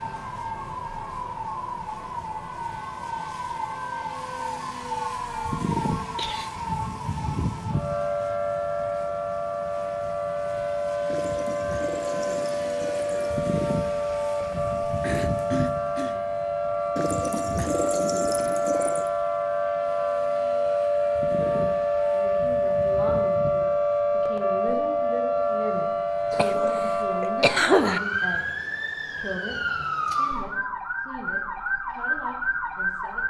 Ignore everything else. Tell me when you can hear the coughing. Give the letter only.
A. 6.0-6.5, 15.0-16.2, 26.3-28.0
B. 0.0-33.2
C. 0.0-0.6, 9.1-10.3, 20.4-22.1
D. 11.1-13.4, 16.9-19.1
A.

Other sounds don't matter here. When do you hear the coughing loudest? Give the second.
28 s.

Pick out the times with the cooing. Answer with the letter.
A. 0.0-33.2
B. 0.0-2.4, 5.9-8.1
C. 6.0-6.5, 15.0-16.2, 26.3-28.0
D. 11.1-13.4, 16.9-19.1
D.